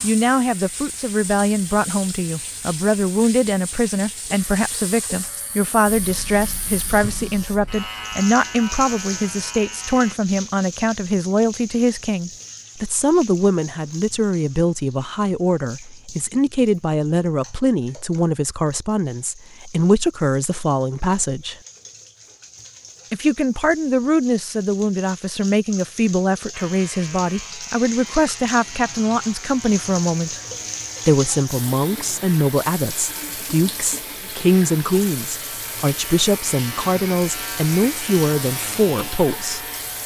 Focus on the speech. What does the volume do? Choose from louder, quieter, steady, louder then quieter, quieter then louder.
steady.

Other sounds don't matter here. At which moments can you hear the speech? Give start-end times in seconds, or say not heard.
0.0-21.6, 23.1-30.4, 31.1-40.0.